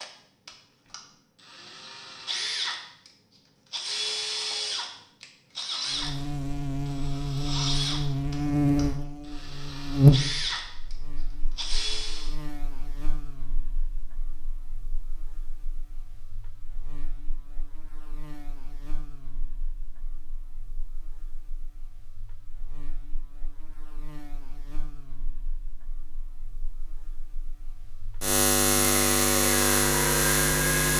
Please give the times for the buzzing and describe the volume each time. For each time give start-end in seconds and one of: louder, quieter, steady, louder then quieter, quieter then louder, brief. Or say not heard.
5.9-30.9 quieter then louder.